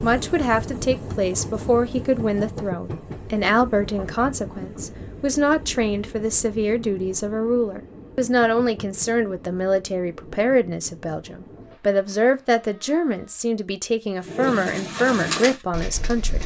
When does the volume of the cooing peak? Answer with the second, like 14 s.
15 s.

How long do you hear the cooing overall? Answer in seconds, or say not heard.
2 s.